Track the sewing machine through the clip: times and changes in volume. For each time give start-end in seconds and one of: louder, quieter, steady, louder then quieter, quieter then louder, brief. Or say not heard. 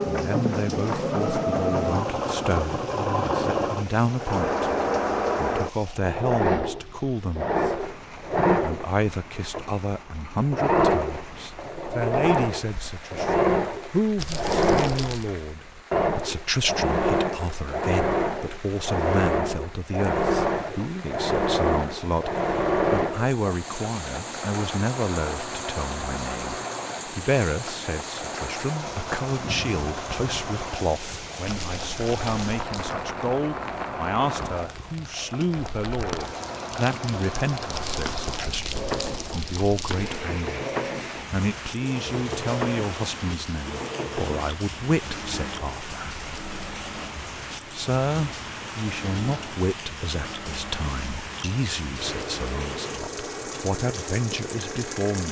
0.0-55.2 quieter.